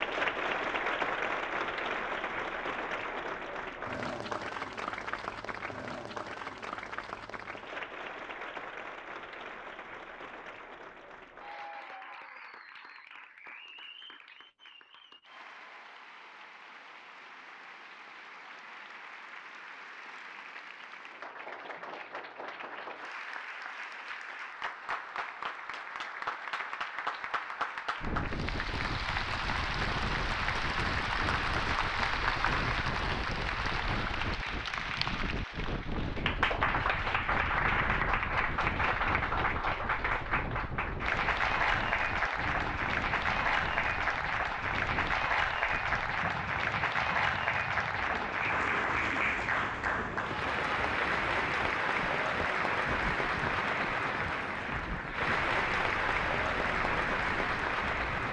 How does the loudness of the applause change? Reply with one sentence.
The loudness of the applause goes down, then up.